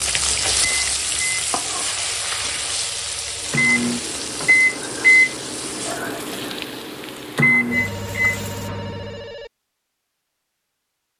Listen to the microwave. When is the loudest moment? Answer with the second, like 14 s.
5 s.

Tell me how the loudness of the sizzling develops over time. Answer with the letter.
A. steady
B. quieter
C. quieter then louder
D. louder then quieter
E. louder
B.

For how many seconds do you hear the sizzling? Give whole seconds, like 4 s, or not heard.
9 s.